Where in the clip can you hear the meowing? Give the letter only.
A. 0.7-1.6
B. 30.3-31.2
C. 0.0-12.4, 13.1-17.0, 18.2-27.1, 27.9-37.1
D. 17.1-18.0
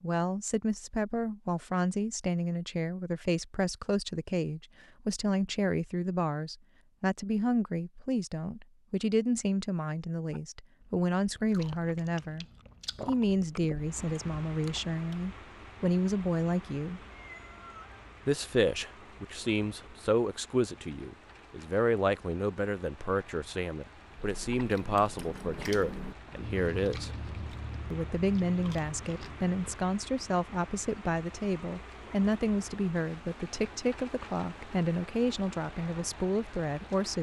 D.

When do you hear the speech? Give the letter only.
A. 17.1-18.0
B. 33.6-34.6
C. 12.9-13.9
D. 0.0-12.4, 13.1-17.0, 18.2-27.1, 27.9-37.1
D.